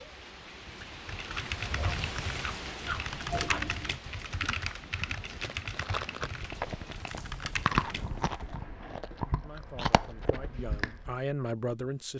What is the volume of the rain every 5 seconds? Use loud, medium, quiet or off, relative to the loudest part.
loud, medium, off.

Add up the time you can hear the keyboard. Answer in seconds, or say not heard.
7 s.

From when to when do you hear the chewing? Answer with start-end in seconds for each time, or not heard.
1.6-11.2.